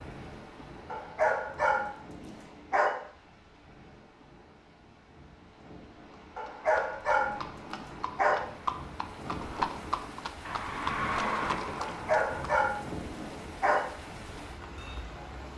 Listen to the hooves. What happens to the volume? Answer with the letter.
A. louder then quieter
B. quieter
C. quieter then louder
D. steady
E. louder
E.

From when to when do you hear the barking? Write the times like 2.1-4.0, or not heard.
0.9-2.9, 6.3-8.3, 11.8-13.8.